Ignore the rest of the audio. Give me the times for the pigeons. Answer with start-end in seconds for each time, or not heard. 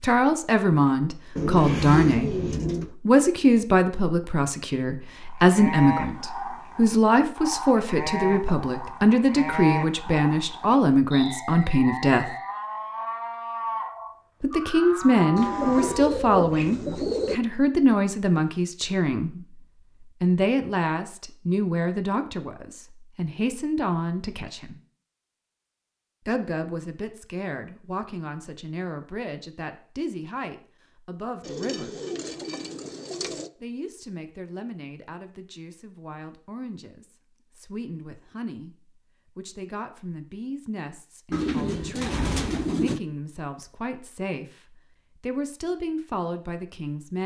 1.4-3.0, 15.3-17.4, 31.4-33.5, 41.3-43.0.